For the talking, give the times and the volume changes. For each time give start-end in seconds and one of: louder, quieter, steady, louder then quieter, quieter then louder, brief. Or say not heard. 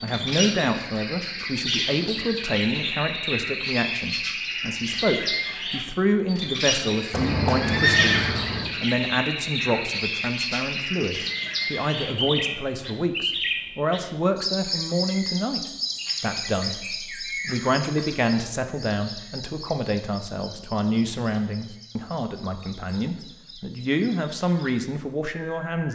0.0-25.8 steady.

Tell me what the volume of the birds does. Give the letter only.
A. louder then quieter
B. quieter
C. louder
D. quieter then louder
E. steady
B.